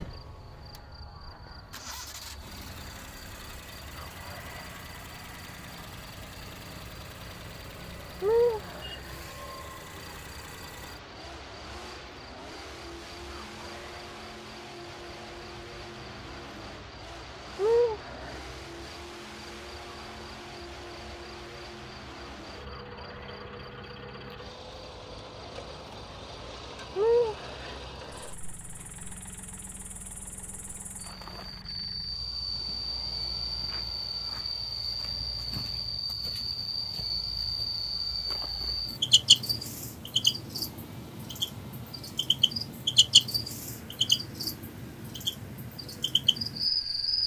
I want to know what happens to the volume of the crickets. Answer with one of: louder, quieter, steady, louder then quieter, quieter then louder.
louder.